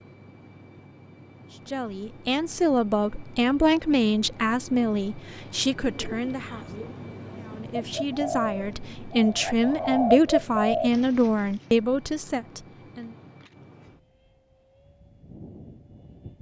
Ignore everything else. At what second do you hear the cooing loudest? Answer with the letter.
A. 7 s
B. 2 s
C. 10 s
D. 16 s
C.